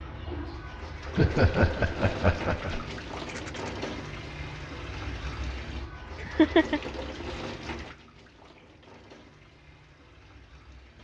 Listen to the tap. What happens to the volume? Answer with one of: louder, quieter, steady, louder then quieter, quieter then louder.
quieter.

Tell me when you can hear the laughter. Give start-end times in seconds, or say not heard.
1.1-2.9, 6.2-6.8.